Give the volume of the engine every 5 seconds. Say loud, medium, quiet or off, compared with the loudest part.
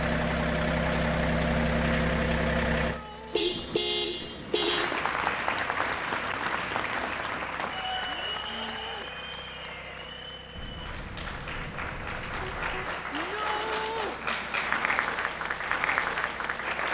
loud, quiet, quiet, quiet.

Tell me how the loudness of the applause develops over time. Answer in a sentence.
The loudness of the applause goes down, then up.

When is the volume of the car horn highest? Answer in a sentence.
The volume of the car horn peaks at 4 seconds.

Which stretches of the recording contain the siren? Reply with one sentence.
The siren can't be heard in this clip.